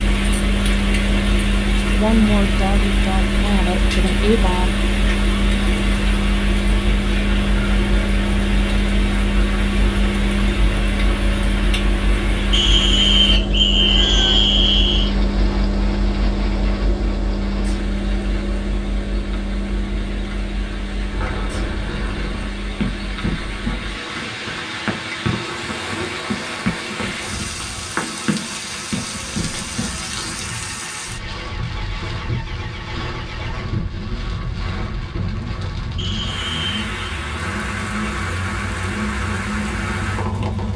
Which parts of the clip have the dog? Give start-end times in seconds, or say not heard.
not heard.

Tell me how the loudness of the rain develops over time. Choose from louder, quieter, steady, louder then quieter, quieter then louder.
quieter then louder.